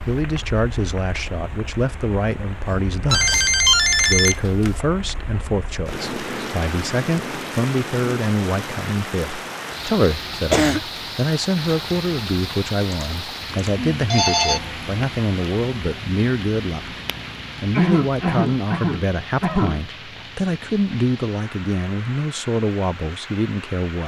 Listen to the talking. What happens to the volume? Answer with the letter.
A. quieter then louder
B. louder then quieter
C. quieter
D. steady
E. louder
D.